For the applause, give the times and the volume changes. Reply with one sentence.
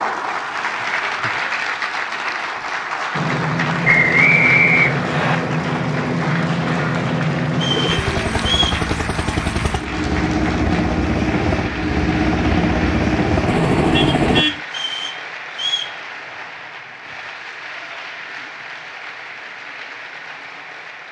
The applause can be heard from 0.0 to 21.0 s, getting quieter.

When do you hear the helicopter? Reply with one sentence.
The helicopter can be heard from 3.1 to 14.4 s.